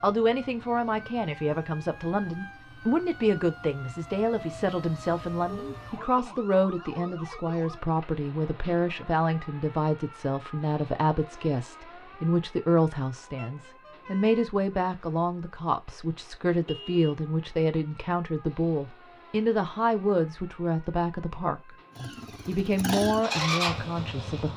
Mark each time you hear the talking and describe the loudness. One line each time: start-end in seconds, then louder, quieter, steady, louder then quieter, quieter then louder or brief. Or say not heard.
0.0-24.5 steady.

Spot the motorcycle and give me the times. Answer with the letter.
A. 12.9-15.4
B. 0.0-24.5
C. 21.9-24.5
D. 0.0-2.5
C.